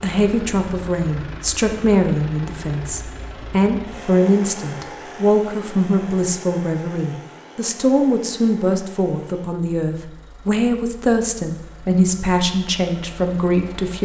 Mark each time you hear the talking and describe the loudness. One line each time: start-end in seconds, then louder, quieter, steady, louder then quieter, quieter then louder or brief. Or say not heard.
0.0-14.0 steady.